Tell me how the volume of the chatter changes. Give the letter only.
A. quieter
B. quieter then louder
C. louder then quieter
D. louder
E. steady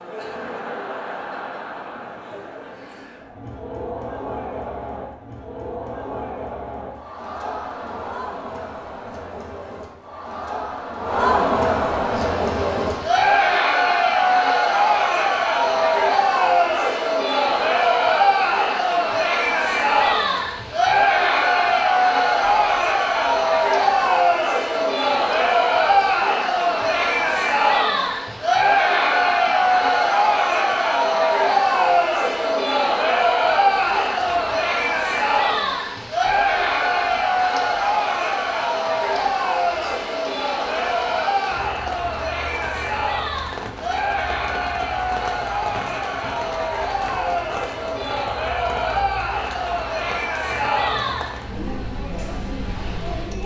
C.